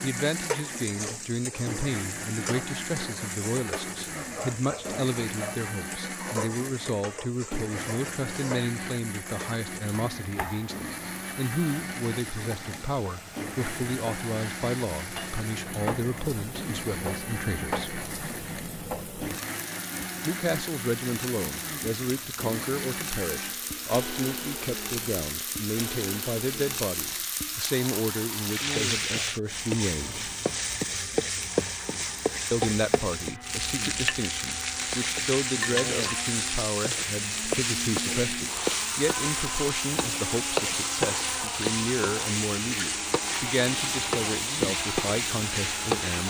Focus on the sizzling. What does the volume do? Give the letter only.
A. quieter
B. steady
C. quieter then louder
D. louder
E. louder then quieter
D.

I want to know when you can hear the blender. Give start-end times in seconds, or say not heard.
0.0-46.2.